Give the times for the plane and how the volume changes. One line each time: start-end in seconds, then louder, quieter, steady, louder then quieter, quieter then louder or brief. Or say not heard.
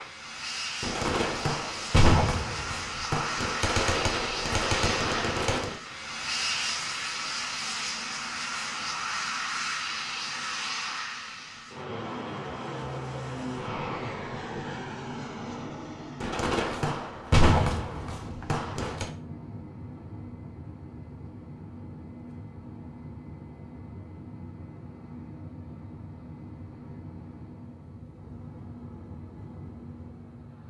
0.0-30.6 quieter.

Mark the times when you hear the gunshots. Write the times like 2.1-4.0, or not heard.
0.8-5.8, 16.2-19.1.